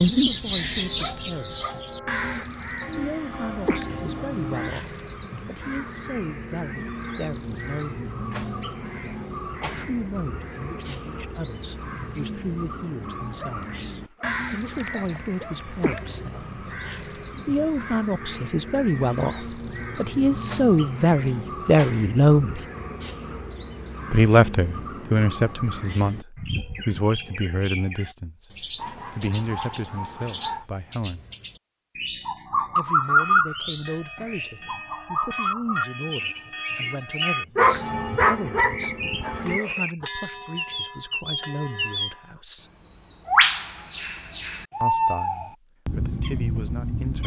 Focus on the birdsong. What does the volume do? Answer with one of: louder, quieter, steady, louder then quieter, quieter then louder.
quieter then louder.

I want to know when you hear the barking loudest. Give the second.
38 s.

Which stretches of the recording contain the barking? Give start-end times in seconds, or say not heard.
0.9-1.9, 13.3-16.1, 28.8-30.6, 37.5-39.9.